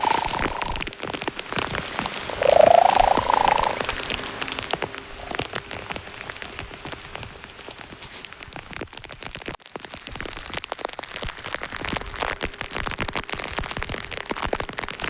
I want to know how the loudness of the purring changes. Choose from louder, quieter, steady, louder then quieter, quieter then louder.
louder then quieter.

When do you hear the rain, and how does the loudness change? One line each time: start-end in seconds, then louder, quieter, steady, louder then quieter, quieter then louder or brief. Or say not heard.
0.0-15.0 quieter then louder.